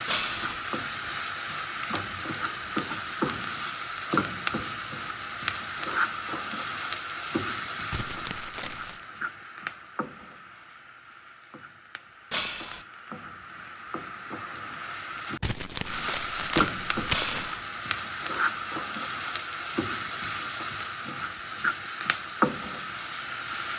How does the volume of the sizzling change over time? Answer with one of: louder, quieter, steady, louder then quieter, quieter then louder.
quieter then louder.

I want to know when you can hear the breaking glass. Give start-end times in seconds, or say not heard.
0.1-0.6, 12.3-12.8, 17.1-17.6.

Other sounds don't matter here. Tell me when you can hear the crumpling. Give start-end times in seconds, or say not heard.
7.9-9.1, 15.4-17.6.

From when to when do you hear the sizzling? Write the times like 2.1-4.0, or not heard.
0.0-23.7.